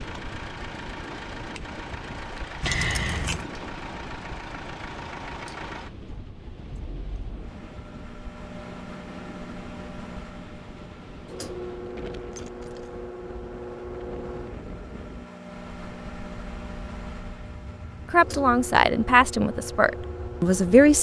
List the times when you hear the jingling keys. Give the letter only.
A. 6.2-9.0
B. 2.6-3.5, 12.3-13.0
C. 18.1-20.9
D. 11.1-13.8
B.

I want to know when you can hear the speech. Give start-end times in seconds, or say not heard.
18.1-20.9.